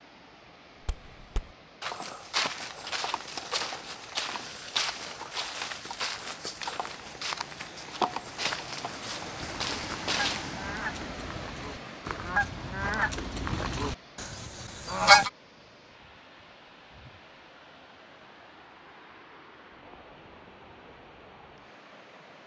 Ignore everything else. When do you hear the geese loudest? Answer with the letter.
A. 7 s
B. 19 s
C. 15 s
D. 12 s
C.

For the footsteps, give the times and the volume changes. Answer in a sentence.
The footsteps can be heard from 0.8 to 10.6 s, at a steady volume.